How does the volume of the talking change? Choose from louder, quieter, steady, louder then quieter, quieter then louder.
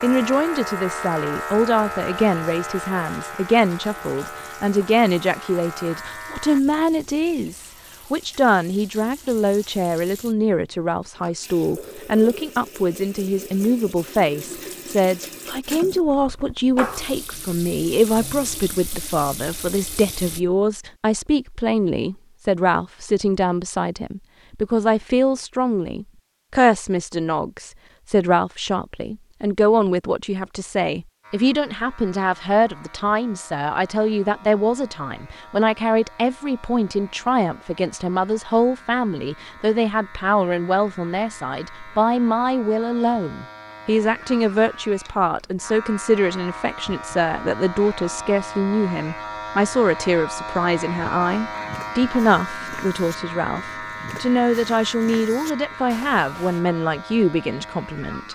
steady.